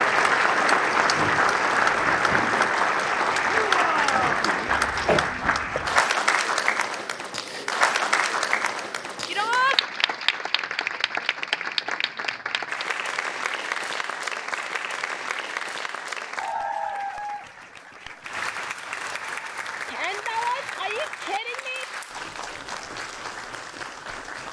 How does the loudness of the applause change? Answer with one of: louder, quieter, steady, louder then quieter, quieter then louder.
quieter.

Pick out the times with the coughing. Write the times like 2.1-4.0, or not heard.
4.8-6.0.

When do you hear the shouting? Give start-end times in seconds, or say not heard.
3.5-4.3, 9.2-9.8, 19.9-21.9.